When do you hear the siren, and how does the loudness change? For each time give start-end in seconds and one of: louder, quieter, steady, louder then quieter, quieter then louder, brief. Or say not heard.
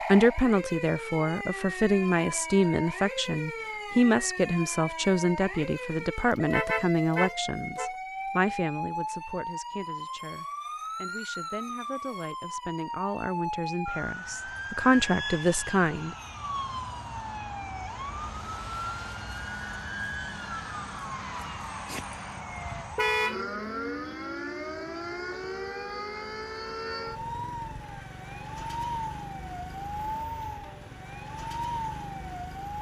0.0-32.7 steady.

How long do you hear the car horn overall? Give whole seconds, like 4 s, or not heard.
2 s.